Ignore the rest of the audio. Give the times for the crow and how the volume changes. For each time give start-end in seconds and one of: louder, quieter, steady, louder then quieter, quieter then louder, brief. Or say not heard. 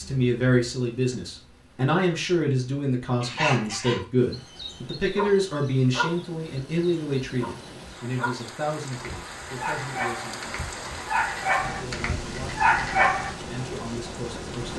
not heard.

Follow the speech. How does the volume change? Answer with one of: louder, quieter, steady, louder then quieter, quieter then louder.
quieter.